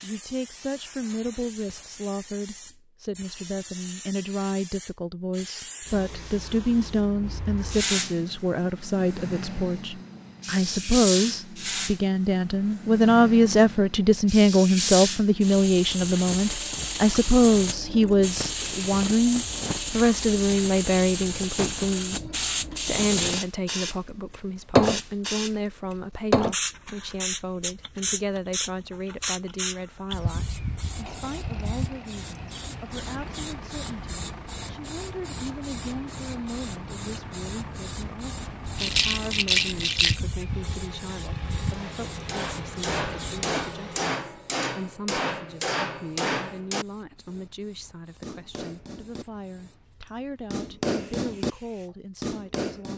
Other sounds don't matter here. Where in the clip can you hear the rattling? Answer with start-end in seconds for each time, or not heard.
38.8-40.2.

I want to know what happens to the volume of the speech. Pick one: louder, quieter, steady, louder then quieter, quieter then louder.
louder then quieter.